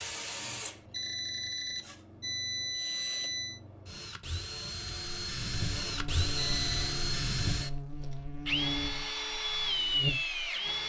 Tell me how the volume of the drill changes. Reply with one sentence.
The volume of the drill goes up.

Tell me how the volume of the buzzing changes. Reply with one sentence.
The volume of the buzzing stays about the same.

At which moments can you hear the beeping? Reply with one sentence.
The beeping can be heard from 0.9 to 3.6 s and from 6.3 to 6.8 s.